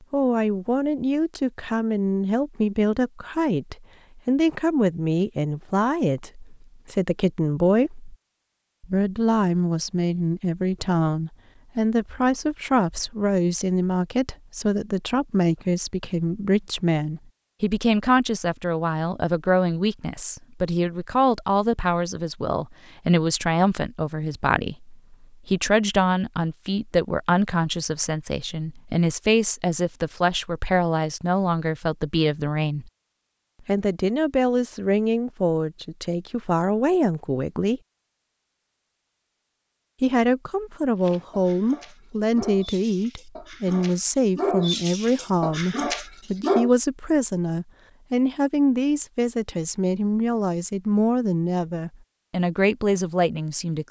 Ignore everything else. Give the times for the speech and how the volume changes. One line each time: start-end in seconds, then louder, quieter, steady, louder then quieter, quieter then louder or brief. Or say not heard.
0.1-8.2 steady
8.8-32.9 steady
33.6-37.8 steady
40.0-53.8 steady.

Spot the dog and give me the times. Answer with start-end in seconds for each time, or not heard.
41.0-46.7.